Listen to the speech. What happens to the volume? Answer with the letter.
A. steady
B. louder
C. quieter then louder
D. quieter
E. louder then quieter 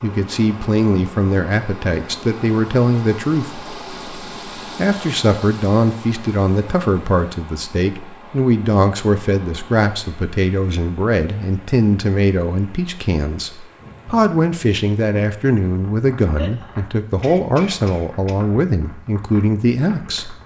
A.